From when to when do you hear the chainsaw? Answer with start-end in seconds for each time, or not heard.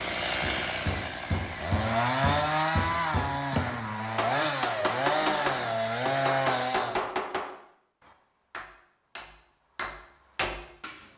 0.0-7.0.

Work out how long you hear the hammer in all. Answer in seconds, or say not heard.
11 s.